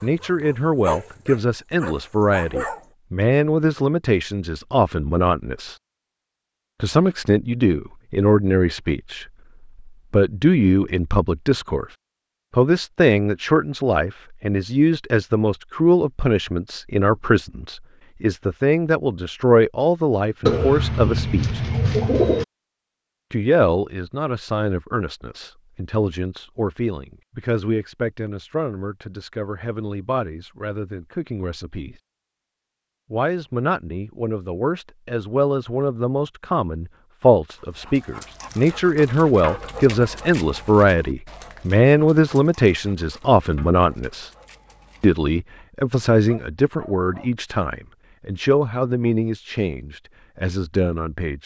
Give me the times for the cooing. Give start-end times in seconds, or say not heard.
20.4-22.4.